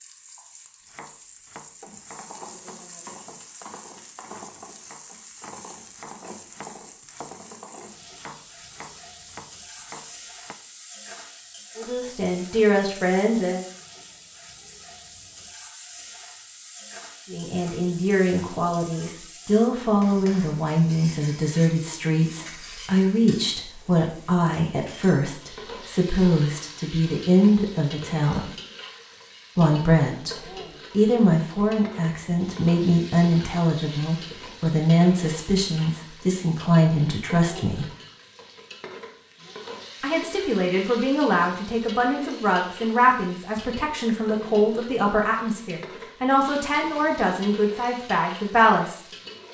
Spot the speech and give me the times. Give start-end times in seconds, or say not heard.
11.8-13.7, 17.3-28.5, 29.6-37.9, 40.0-49.0.